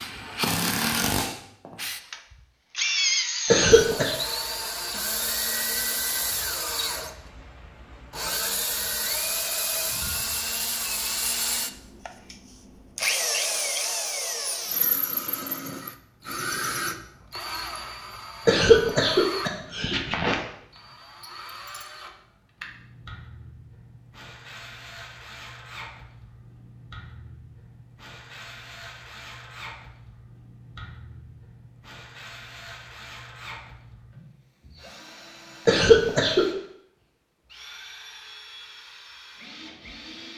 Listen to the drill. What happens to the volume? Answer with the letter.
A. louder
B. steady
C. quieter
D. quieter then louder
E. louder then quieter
C.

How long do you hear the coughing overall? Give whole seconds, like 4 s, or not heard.
3 s.